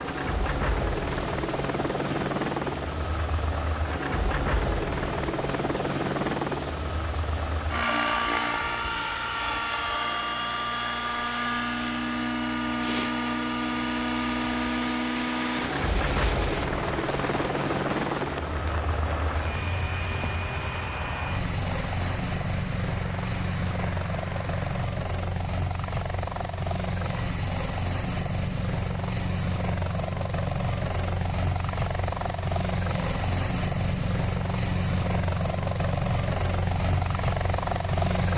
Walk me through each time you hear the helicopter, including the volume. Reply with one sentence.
You can hear the helicopter from 0.0 to 38.3 s, at a steady volume.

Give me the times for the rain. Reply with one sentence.
The rain can be heard from 0.0 to 24.9 s.